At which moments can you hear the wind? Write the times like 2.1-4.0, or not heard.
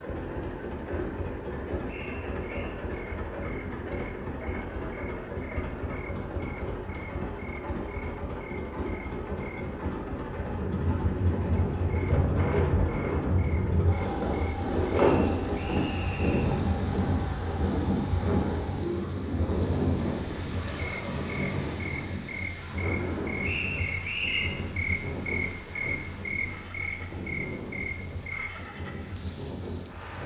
10.4-30.2.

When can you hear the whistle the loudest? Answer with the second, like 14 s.
24 s.